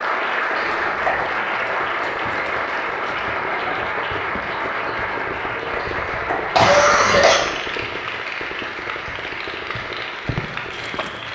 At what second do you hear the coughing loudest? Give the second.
7 s.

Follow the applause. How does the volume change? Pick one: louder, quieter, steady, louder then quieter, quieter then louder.
quieter.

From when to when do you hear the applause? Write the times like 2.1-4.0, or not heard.
0.0-11.3.